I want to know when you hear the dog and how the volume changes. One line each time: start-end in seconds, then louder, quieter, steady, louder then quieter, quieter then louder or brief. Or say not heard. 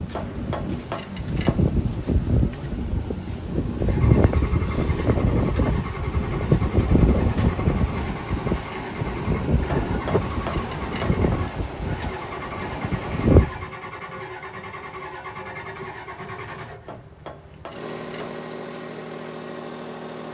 not heard.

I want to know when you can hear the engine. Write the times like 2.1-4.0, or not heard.
0.1-20.3.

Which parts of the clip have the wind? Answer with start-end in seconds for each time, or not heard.
0.0-13.7.